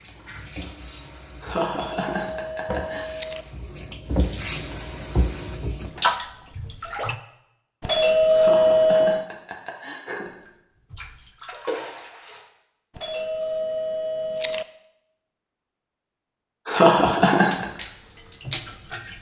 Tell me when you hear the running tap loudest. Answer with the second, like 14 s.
6 s.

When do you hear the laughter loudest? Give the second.
17 s.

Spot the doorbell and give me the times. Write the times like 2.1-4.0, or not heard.
1.7-3.5, 7.8-9.2, 12.9-14.7.